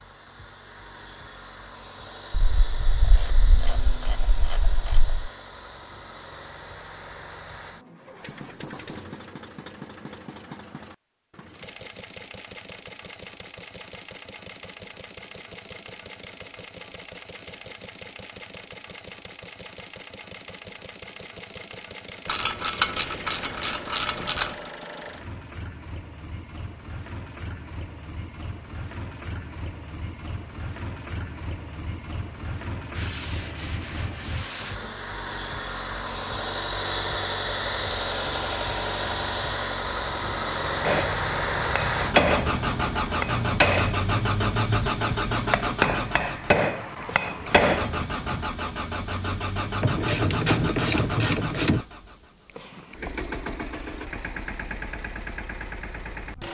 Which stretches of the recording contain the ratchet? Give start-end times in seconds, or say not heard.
2.3-5.2, 22.2-24.5, 49.8-51.9.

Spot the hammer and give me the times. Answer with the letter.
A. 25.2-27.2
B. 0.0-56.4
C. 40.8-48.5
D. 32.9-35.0
C.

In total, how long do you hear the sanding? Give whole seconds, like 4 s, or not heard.
2 s.